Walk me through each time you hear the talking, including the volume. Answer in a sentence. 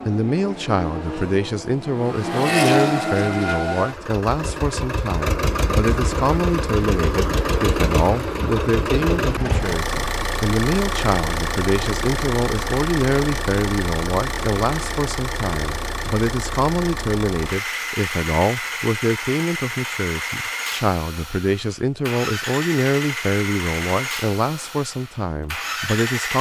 You can hear the talking from 0.0 to 26.3 s, at a steady volume.